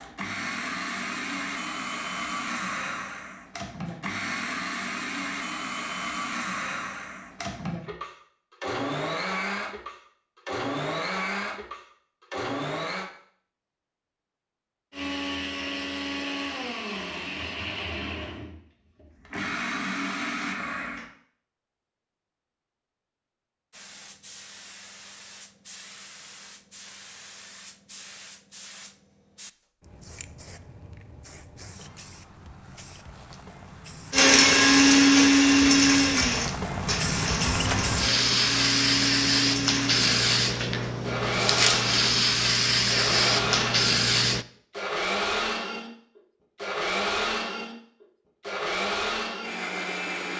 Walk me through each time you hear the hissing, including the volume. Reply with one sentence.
The hissing can be heard from 23.7 to 44.5 s, getting louder.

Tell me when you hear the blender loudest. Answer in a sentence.
The loudest moment of the blender is at 35 seconds.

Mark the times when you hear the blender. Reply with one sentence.
The blender can be heard from 0.0 to 13.1 s, from 14.9 to 21.1 s and from 34.1 to 50.3 s.